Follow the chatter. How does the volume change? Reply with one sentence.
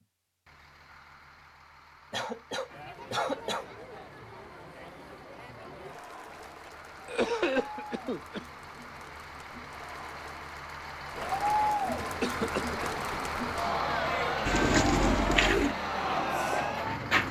The loudness of the chatter goes up.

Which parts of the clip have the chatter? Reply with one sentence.
The chatter can be heard from 2.6 to 17.1 s.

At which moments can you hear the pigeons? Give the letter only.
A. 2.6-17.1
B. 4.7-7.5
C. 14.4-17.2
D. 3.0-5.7
C.